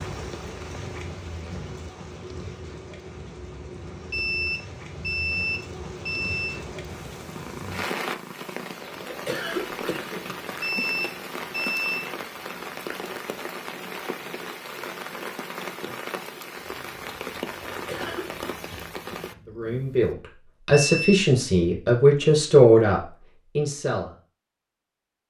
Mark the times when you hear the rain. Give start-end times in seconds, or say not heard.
0.0-19.4.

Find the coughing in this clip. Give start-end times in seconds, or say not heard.
9.1-10.2, 17.7-18.4.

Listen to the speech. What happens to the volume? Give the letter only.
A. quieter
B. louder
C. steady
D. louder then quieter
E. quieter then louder
D.